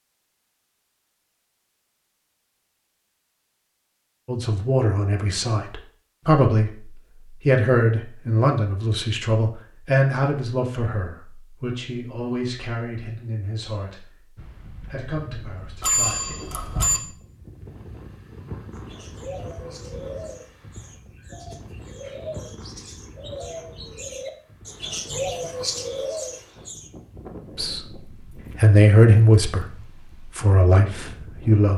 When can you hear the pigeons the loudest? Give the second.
25 s.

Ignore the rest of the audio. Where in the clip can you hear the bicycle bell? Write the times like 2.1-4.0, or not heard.
15.8-17.0.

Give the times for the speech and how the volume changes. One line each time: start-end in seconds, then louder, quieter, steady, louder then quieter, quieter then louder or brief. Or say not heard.
4.2-16.4 quieter
27.6-31.7 louder then quieter.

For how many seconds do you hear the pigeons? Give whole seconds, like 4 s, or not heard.
8 s.